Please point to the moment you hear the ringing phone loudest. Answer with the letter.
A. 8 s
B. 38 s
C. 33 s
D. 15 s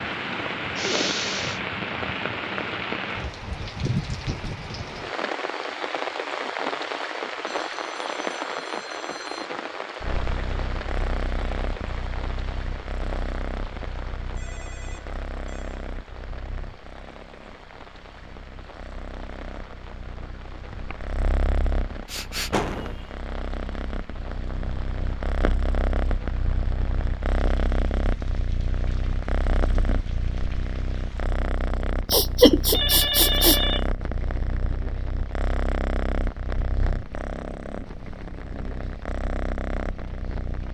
C.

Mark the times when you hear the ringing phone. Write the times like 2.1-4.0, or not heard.
7.5-9.5, 14.2-15.8, 32.7-33.9.